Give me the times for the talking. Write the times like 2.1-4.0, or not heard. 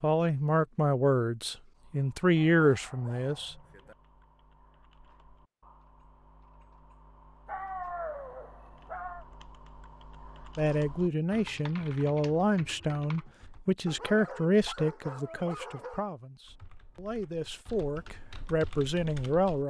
0.0-3.5, 10.6-19.6.